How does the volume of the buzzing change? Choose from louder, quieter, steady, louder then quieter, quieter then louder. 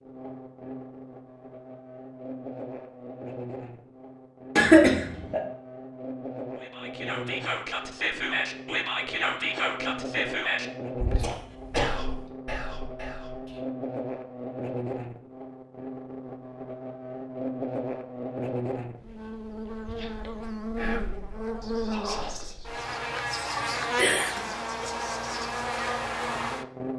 louder.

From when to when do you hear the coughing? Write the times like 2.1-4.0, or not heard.
4.5-5.4, 11.2-12.0, 23.6-24.4.